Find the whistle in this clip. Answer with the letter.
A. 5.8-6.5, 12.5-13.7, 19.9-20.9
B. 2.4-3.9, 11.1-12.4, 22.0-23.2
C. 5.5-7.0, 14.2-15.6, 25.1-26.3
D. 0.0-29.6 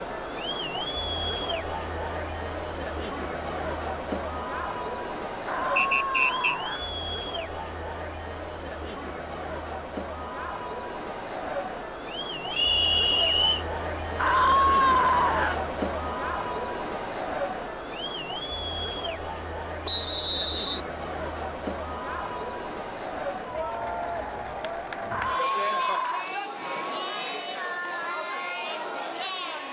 A.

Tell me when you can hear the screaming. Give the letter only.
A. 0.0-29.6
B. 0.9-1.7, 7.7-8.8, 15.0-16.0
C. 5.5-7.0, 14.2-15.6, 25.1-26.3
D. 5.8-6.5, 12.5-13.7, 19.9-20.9
C.